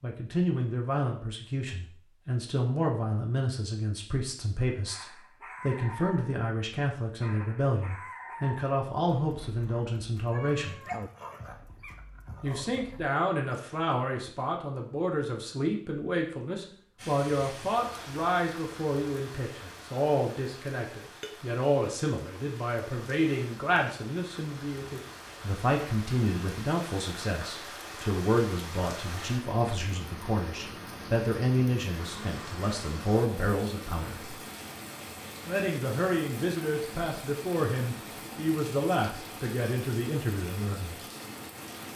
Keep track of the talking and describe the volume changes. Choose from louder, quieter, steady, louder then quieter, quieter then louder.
steady.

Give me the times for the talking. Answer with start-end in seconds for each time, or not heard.
0.0-10.8, 12.4-34.4, 35.5-41.0.